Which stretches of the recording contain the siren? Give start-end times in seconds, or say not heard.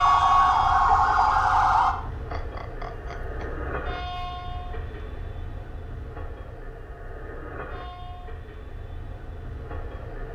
0.0-1.9.